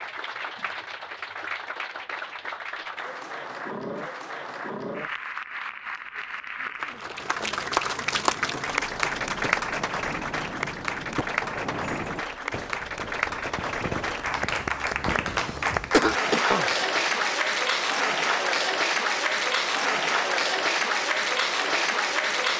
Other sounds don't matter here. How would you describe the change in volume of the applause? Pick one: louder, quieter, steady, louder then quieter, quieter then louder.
louder.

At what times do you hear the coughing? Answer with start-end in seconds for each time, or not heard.
15.4-16.6.